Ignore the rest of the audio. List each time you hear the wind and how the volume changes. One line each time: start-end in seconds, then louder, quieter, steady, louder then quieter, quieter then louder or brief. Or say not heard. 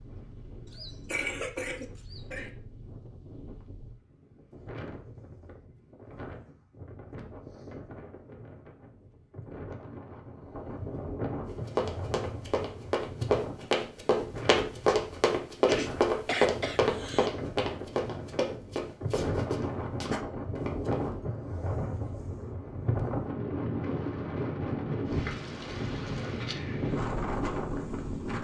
0.0-28.3 louder.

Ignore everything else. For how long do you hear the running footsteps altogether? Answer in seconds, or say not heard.
10 s.